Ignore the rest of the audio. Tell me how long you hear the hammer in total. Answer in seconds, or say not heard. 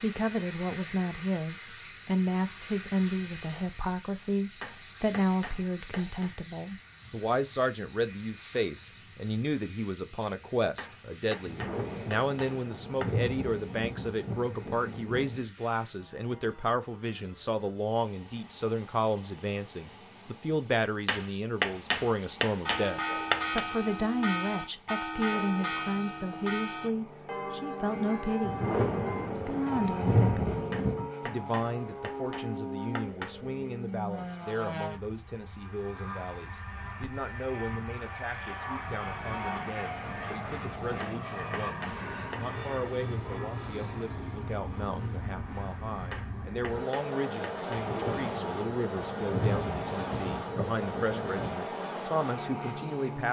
13 s.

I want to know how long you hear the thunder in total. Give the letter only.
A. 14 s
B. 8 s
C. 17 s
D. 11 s
D.